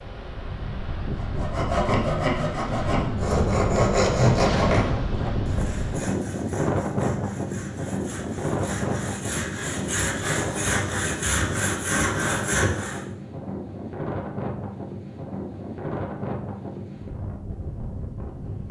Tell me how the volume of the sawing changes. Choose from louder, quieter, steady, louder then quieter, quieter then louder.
quieter then louder.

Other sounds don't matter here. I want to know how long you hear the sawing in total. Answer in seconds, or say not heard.
12 s.